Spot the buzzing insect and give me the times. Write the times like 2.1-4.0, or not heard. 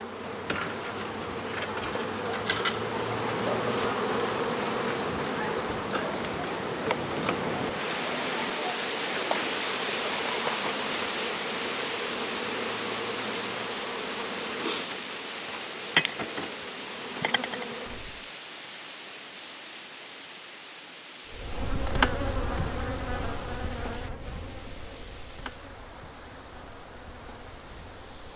0.0-18.2, 21.3-28.3.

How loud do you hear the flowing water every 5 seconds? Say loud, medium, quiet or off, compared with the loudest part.
medium, loud, loud, medium, quiet, quiet.